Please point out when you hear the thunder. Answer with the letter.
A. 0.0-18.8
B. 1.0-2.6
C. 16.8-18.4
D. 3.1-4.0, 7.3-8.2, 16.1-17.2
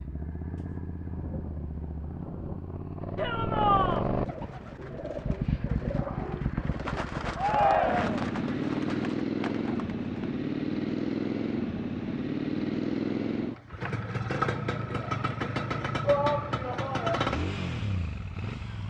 B.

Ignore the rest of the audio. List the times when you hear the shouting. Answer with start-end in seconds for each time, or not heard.
3.1-4.0, 7.3-8.2, 16.1-17.2.